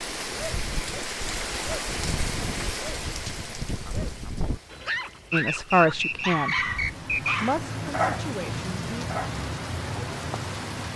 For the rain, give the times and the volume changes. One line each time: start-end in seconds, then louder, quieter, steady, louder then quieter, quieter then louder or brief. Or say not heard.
0.0-10.9 quieter then louder.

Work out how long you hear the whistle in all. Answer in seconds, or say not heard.
2 s.